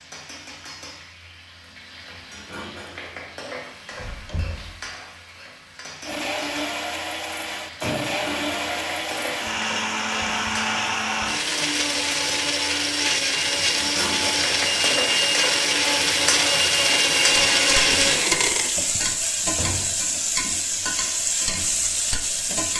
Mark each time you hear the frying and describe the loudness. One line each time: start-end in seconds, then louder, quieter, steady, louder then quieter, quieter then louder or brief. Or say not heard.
0.0-22.7 louder.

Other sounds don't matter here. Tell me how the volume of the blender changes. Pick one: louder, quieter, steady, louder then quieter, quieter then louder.
louder.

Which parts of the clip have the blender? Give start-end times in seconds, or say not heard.
6.0-18.7.